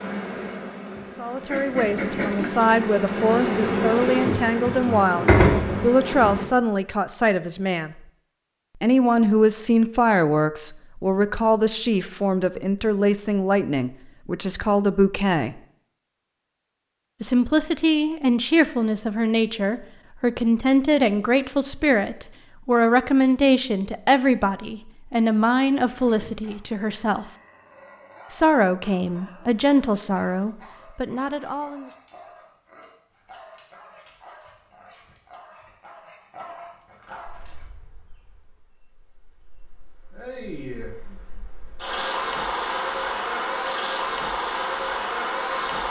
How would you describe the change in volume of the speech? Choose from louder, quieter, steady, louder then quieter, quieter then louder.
steady.